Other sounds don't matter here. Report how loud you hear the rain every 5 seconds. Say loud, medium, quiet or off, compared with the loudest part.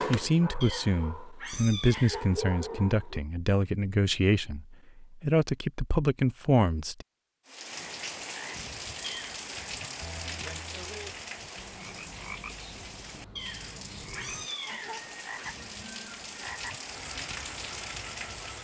off, loud, loud, loud.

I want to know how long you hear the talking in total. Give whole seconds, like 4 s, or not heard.
7 s.